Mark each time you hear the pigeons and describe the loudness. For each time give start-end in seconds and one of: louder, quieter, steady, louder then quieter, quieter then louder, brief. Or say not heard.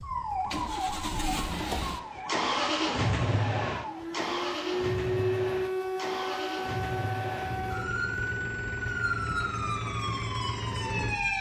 not heard.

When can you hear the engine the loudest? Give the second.
3 s.